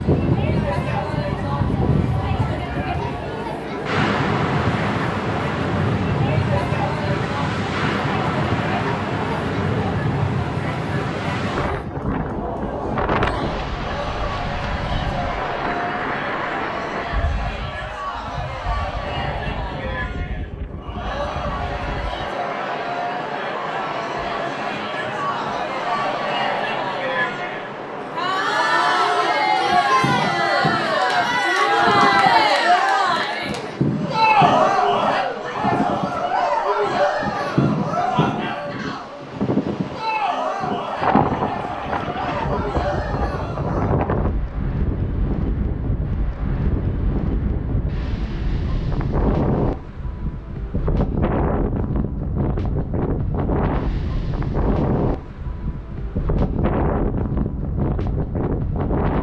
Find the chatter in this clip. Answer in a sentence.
You can hear the chatter from 0.0 to 44.0 s.